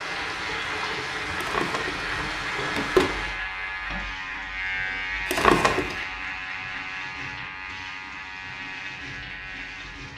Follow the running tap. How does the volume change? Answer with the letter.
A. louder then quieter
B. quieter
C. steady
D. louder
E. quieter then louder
B.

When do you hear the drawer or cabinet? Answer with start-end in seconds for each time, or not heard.
1.4-3.1, 5.2-6.0.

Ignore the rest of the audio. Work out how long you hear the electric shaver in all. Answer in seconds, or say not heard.
10 s.